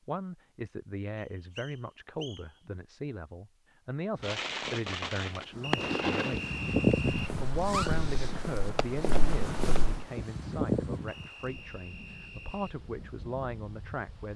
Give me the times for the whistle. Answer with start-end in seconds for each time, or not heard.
1.1-2.5, 5.6-7.3, 11.1-12.8.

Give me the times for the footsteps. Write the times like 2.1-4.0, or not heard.
7.1-10.1.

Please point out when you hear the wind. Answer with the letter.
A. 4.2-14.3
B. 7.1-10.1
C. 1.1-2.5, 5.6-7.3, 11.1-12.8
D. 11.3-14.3
A.